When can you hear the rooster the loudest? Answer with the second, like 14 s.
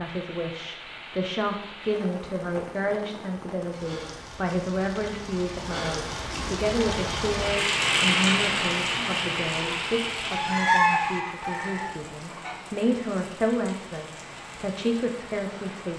11 s.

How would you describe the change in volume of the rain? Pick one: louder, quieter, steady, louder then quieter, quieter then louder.
louder then quieter.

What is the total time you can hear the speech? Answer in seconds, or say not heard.
16 s.